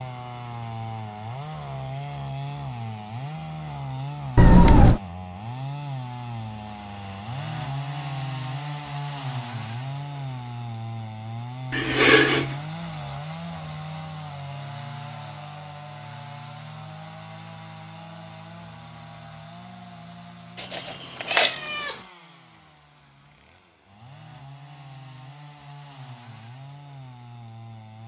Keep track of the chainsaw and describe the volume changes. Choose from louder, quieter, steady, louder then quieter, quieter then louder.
quieter.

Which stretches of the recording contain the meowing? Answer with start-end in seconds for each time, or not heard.
4.3-5.0, 11.7-12.6, 20.6-22.0.